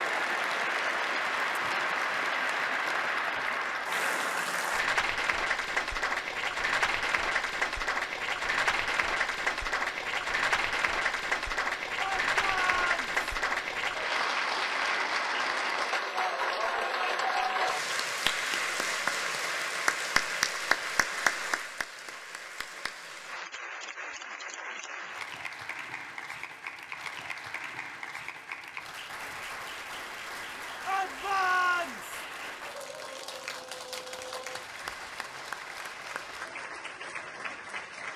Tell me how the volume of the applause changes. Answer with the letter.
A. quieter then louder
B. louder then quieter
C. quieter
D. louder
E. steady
C.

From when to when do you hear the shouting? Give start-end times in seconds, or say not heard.
11.9-13.1, 30.9-32.2.